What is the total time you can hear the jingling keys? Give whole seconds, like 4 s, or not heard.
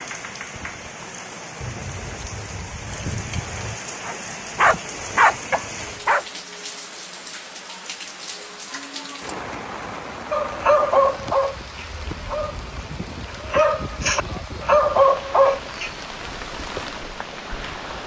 2 s.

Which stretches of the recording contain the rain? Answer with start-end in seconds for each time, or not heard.
0.0-18.0.